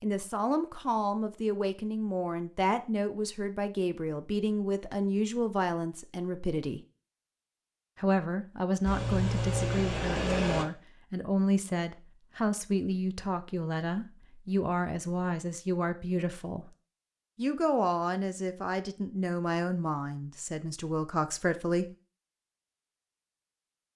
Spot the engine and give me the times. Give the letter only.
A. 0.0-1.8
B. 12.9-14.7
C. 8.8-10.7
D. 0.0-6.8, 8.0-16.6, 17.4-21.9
C.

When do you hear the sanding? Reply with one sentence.
The sanding can't be heard in this clip.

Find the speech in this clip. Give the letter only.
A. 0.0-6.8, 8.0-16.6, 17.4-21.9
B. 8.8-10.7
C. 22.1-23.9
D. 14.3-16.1
A.